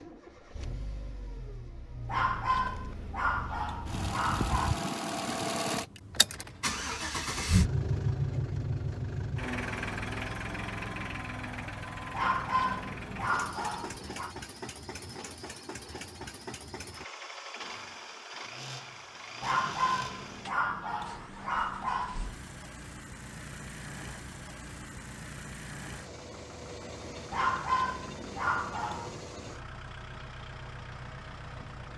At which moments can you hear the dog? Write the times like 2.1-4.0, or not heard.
2.0-4.8, 12.1-14.3, 19.4-22.3, 27.3-29.1.